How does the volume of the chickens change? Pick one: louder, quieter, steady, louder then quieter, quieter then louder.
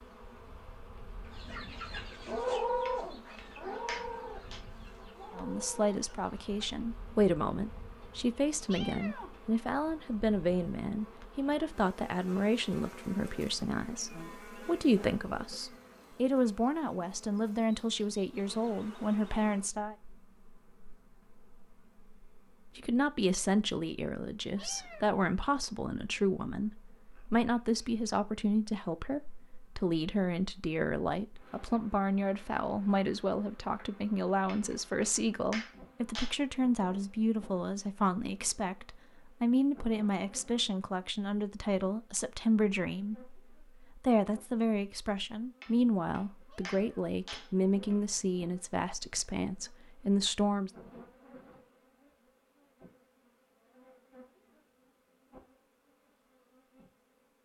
quieter then louder.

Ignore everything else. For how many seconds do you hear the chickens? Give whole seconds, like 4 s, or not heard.
5 s.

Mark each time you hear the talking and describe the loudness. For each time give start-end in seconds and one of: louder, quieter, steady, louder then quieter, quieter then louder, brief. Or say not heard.
5.3-19.9 steady
22.8-50.7 steady.